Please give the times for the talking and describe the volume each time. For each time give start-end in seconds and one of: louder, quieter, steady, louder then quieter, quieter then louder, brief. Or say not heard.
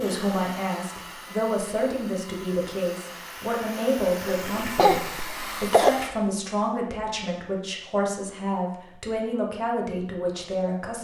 0.0-10.9 steady.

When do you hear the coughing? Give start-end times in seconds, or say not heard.
4.2-6.0.